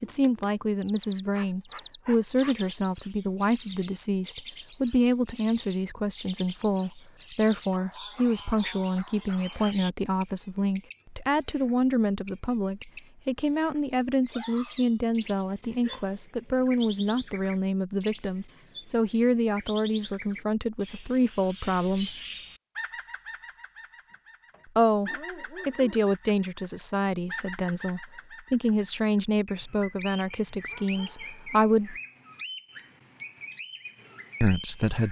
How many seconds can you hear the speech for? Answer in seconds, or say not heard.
30 s.